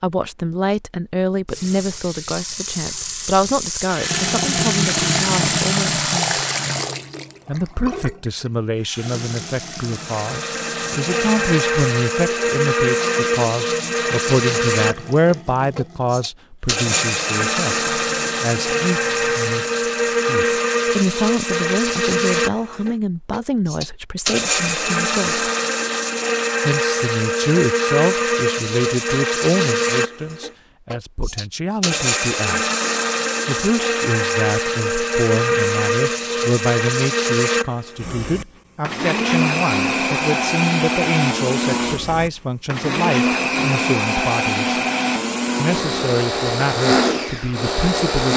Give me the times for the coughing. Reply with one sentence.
You can't hear the coughing here.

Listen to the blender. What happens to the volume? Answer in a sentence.
The loudness of the blender stays about the same.